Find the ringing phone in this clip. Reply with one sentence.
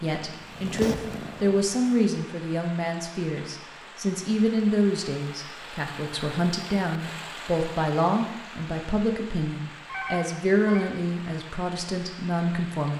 The ringing phone can be heard from 9.8 to 10.9 s.